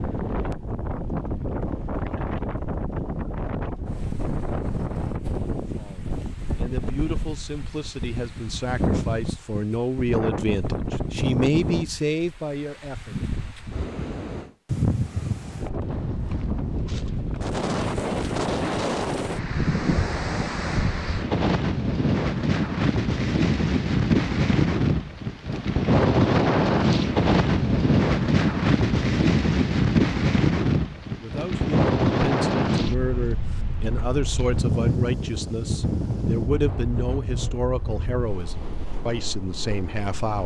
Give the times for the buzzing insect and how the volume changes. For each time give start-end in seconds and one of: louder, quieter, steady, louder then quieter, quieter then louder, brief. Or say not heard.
not heard.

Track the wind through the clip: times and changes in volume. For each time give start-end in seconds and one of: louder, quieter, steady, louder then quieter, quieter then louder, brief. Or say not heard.
0.0-40.4 louder then quieter.